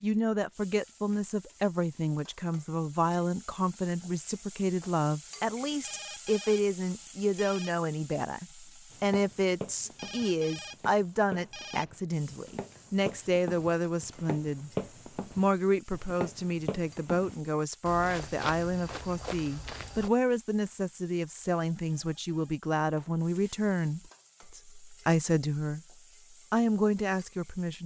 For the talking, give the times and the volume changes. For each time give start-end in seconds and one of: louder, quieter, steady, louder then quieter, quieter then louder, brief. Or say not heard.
0.0-14.7 steady
15.3-25.8 steady
26.5-27.8 brief.